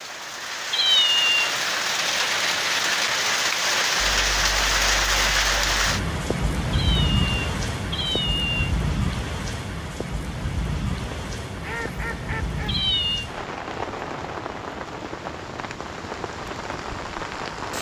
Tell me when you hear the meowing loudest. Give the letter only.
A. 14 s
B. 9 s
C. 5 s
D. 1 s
D.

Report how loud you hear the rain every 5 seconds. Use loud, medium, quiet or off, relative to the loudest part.
loud, loud, medium, medium.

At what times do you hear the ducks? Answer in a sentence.
The ducks can be heard from 10.9 to 12.8 s.